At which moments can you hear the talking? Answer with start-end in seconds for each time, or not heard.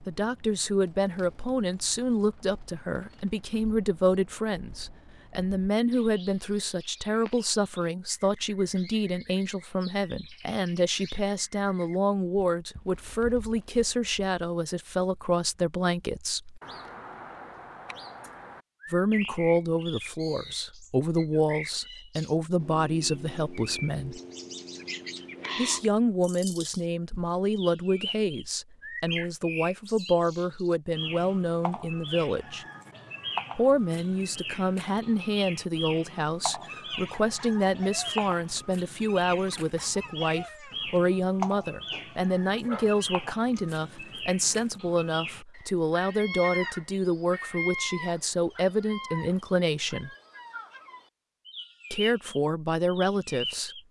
0.1-16.6, 18.9-24.2, 25.6-32.6, 33.5-50.1, 51.9-53.8.